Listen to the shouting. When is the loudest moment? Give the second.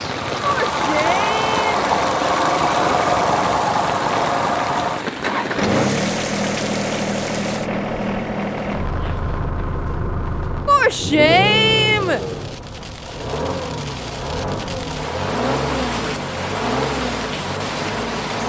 11 s.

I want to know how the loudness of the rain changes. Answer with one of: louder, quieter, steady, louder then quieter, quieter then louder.
quieter then louder.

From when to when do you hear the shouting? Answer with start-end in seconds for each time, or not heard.
0.4-1.9, 10.7-12.2.